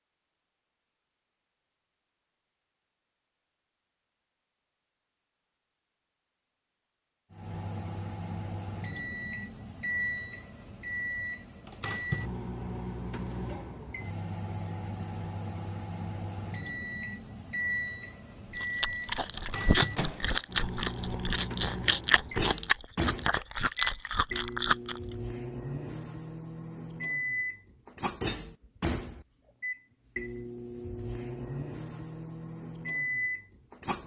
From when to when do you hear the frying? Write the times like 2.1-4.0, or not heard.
not heard.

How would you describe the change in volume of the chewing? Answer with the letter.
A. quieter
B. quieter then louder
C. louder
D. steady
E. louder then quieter
D.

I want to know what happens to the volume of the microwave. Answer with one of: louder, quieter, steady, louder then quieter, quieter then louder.
steady.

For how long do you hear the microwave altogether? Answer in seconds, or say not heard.
27 s.